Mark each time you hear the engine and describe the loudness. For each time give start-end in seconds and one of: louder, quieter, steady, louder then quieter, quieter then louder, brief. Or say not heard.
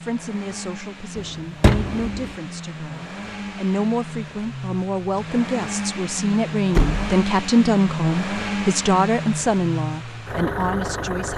0.0-11.3 louder.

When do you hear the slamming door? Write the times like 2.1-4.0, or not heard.
1.6-2.2, 6.7-7.2.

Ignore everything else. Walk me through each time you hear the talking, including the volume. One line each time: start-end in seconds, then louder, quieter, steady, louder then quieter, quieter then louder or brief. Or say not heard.
0.0-11.3 louder.